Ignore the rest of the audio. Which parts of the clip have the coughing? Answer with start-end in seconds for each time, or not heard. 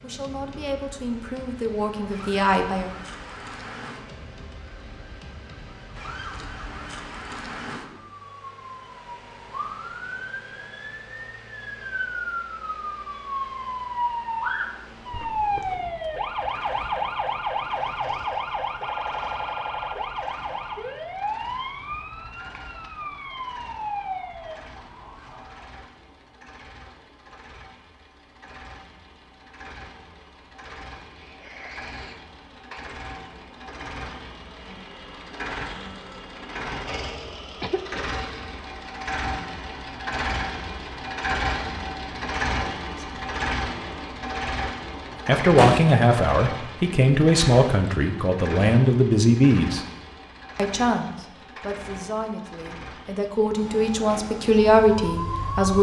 15.1-15.8, 31.1-32.9, 37.6-38.5.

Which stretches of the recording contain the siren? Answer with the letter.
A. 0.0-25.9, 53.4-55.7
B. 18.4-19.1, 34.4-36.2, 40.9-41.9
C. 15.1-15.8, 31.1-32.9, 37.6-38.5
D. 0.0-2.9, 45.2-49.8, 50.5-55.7
A.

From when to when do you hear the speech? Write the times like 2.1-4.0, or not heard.
0.0-2.9, 45.2-49.8, 50.5-55.7.